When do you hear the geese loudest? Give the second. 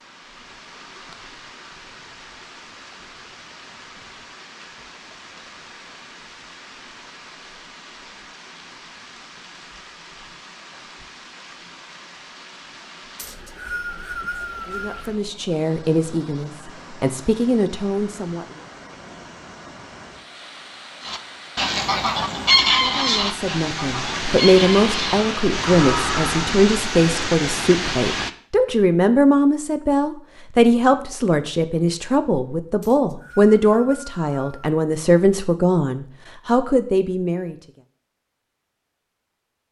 23 s.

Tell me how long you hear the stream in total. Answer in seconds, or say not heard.
28 s.